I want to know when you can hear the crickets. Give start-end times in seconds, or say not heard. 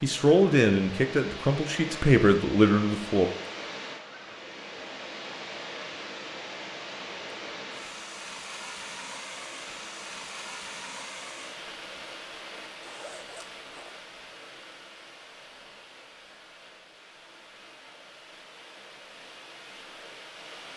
not heard.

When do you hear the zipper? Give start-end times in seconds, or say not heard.
12.8-14.0.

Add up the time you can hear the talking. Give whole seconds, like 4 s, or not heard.
3 s.